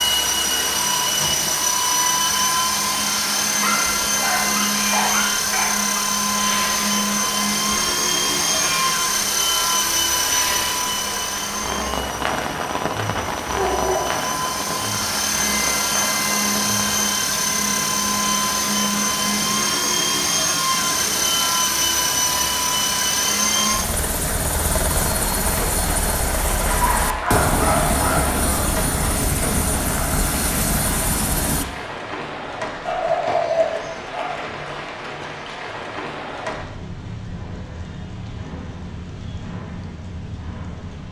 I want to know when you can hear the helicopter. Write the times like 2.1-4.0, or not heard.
0.0-31.6.